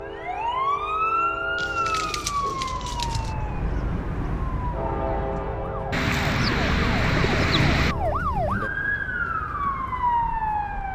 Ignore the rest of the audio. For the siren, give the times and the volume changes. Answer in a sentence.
The siren can be heard from 0.0 to 10.8 s, getting quieter then louder.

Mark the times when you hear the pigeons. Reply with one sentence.
You can hear the pigeons from 1.6 to 3.4 s and from 5.9 to 8.0 s.